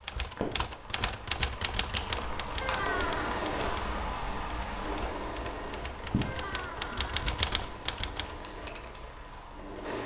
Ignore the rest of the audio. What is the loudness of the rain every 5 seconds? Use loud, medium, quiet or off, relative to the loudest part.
loud, medium.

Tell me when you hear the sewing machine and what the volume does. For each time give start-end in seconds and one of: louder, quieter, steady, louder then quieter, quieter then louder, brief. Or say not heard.
2.7-10.0 quieter.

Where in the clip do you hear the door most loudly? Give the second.
3 s.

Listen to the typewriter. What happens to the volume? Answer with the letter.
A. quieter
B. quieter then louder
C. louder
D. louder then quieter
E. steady
B.